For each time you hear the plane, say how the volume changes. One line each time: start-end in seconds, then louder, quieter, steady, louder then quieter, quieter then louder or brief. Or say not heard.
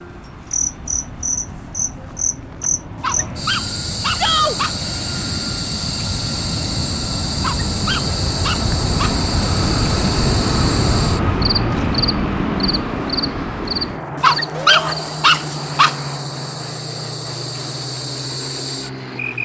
0.0-19.4 louder then quieter.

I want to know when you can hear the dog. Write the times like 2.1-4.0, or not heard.
3.0-4.8, 7.3-9.2, 14.2-15.9.